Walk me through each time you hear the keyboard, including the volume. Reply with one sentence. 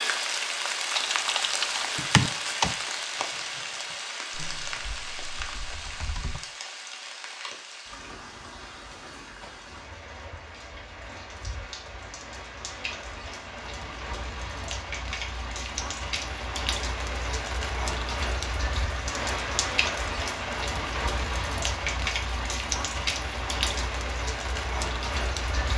The keyboard can be heard from 0.9 to 6.4 s, getting quieter.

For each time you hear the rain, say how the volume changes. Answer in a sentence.
The rain can be heard from 0.0 to 25.7 s, getting quieter then louder.